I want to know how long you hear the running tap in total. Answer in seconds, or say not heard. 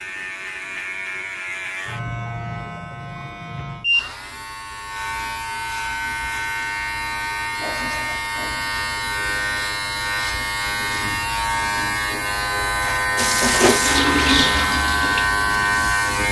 3 s.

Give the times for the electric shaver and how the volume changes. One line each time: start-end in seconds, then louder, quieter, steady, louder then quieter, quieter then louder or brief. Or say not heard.
0.0-16.2 louder.